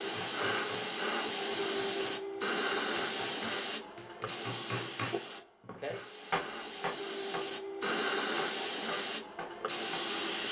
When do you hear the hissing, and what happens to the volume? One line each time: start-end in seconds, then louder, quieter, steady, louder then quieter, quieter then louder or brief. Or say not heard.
0.0-10.4 quieter then louder.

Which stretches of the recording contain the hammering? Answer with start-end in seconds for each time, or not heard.
0.0-10.2.